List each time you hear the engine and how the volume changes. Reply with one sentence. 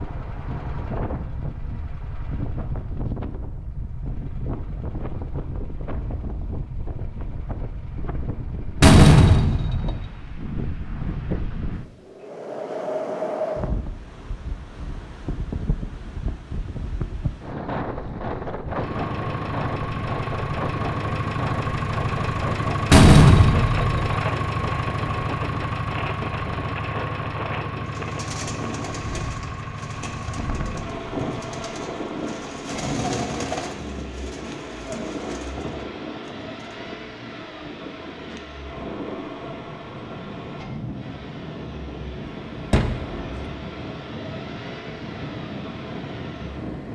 The engine can be heard from 18.6 to 46.9 s, getting quieter.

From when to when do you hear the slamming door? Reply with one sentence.
You can hear the slamming door from 8.8 to 10.1 s, from 22.9 to 24.1 s and from 42.7 to 43.2 s.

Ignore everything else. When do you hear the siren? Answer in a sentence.
The siren can't be heard in this clip.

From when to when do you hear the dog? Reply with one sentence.
You can't hear the dog here.